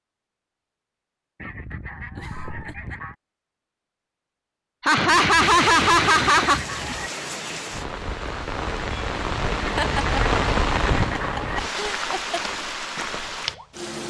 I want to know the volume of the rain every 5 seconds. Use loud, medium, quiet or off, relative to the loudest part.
off, loud, loud.